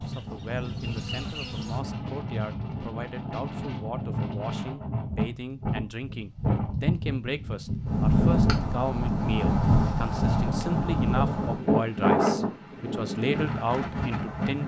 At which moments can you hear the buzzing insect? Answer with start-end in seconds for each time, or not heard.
0.0-1.8.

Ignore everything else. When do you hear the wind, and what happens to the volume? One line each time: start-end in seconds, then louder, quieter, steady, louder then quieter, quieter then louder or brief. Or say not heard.
0.0-14.6 louder.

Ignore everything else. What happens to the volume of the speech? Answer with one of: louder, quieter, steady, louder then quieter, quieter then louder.
louder.